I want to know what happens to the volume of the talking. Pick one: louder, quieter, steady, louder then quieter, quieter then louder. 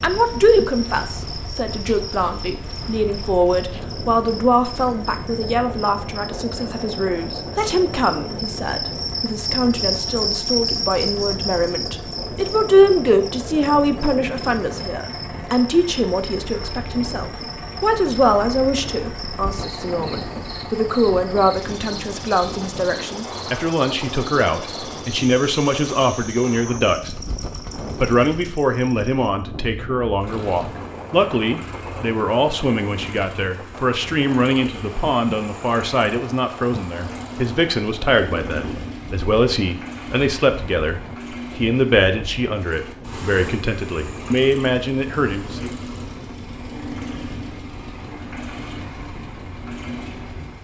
steady.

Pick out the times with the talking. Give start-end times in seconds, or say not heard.
0.0-27.1, 28.0-45.7.